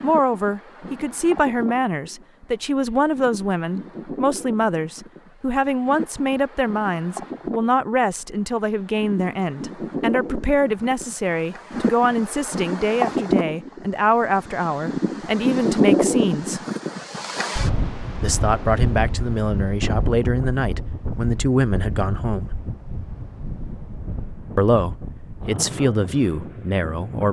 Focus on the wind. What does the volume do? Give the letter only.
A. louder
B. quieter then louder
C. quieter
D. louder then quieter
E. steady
D.